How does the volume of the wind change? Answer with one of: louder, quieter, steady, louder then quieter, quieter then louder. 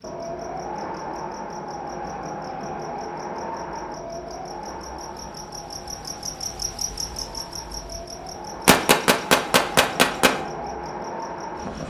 quieter then louder.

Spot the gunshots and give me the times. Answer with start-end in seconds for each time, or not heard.
8.7-10.4.